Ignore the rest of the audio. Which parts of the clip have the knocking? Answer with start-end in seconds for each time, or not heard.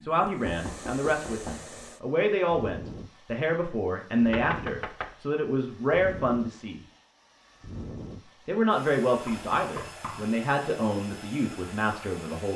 0.5-1.7, 4.3-5.2, 9.2-10.3.